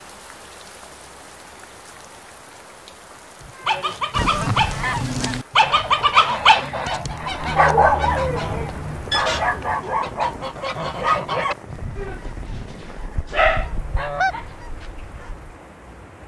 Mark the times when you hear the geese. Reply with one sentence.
You can hear the geese from 3.6 to 15.5 s.